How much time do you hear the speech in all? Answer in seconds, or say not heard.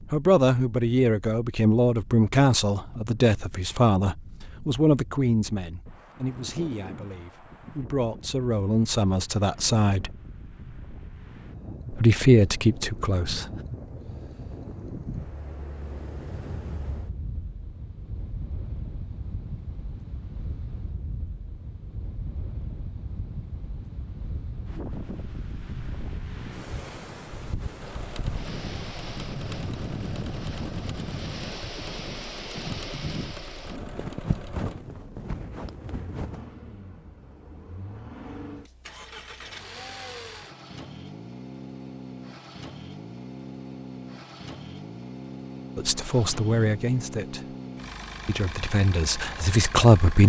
15 s.